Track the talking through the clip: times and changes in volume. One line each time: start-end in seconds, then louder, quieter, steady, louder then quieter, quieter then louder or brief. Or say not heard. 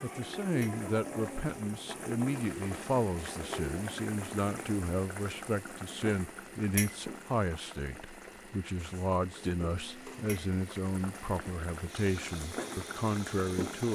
0.0-13.9 steady.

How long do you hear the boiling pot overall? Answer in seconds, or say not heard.
14 s.